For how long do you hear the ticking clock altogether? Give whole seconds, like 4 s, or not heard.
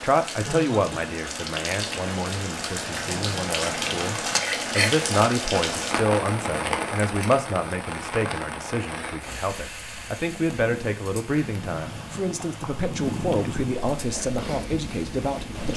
not heard.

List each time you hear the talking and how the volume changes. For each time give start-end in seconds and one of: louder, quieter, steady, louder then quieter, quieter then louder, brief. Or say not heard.
0.0-15.7 steady.